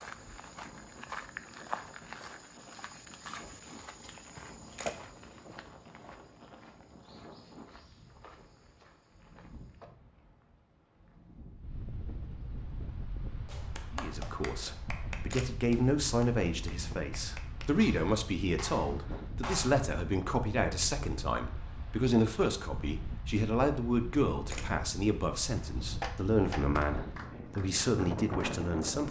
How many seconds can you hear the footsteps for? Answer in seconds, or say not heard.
10 s.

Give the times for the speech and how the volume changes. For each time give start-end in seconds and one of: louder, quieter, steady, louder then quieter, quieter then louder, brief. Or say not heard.
13.9-29.0 steady.